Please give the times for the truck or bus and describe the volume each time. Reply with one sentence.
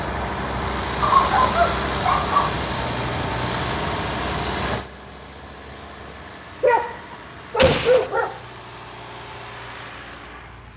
The truck or bus can be heard from 0.0 to 10.7 s, getting quieter.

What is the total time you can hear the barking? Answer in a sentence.
You can hear the barking for 3 seconds altogether.